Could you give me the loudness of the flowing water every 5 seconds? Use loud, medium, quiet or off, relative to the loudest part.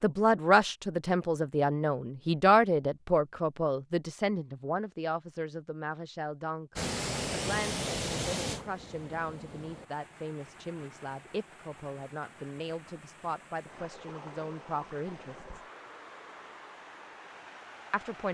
off, loud, quiet, quiet.